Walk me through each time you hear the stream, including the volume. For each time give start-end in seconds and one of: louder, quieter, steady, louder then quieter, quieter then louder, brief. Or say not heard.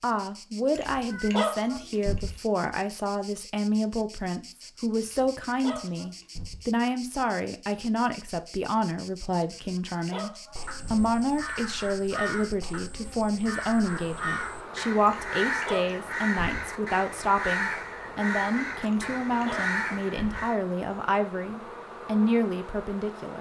not heard.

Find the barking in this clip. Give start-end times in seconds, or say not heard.
0.8-2.3, 5.0-6.6, 9.5-11.1, 15.1-16.6, 18.9-20.4.